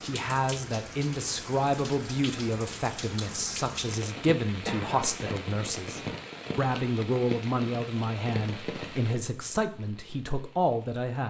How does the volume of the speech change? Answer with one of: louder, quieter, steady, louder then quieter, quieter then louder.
steady.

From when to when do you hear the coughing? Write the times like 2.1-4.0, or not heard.
4.7-5.4.